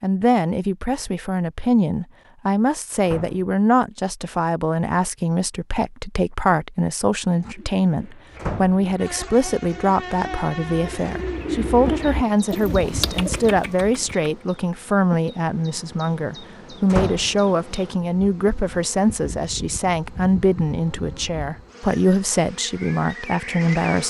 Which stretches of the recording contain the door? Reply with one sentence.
The door can be heard from 3.0 to 3.5 s, from 8.3 to 8.8 s and from 16.9 to 17.4 s.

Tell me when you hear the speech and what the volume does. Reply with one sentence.
You can hear the speech from 0.0 to 24.0 s, at a steady volume.